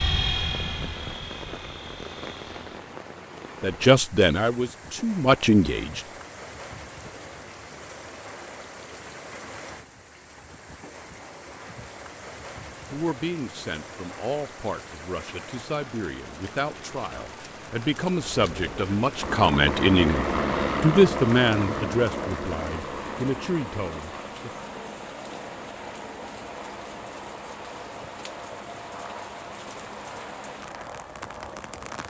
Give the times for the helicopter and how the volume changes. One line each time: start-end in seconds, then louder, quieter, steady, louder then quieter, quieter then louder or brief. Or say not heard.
0.0-3.0 brief
18.3-32.0 quieter.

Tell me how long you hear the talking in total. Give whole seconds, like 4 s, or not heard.
14 s.